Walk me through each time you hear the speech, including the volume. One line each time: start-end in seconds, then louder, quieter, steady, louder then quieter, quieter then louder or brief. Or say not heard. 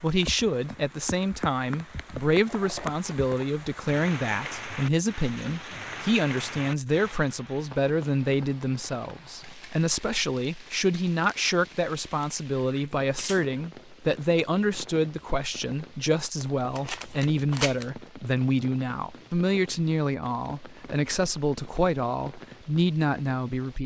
0.0-23.8 steady.